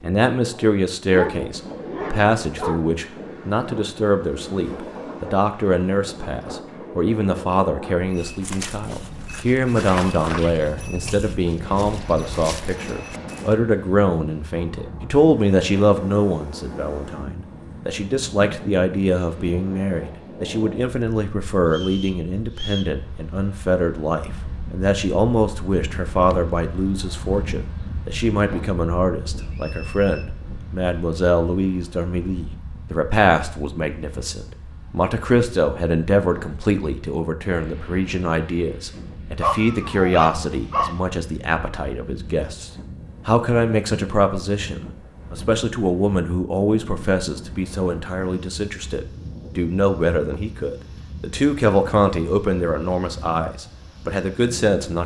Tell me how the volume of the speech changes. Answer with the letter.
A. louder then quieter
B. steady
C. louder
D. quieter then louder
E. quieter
B.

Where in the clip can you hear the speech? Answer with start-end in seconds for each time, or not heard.
0.0-55.0.